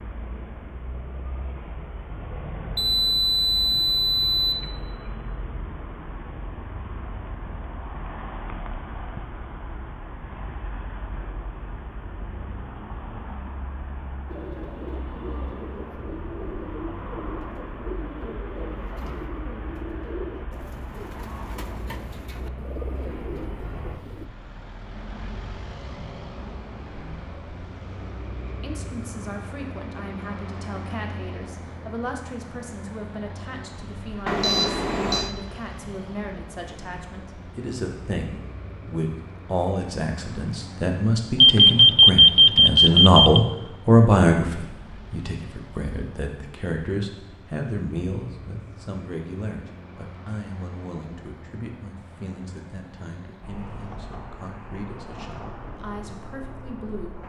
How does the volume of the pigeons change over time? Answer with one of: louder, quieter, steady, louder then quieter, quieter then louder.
steady.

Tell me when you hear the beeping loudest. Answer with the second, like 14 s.
42 s.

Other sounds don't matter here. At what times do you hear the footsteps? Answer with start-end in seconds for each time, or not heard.
not heard.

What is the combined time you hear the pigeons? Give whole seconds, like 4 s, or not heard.
10 s.